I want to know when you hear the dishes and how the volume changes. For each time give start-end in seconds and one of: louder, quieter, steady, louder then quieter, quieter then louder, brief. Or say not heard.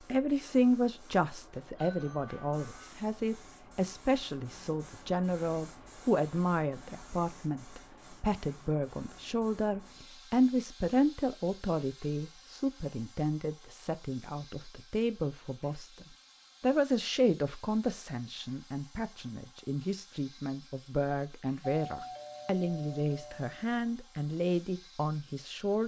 not heard.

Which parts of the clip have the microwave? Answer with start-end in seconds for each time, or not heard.
not heard.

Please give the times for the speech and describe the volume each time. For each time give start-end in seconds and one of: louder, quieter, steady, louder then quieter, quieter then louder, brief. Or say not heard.
0.1-25.8 steady.